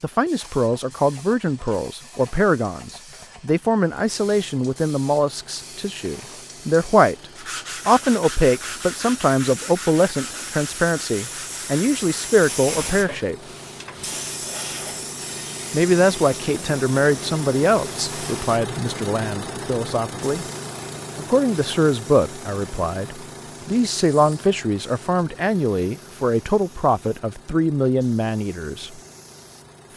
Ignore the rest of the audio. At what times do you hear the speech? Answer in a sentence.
The speech can be heard from 0.0 to 7.2 s, from 7.8 to 13.3 s, from 15.7 to 20.4 s and from 21.1 to 29.0 s.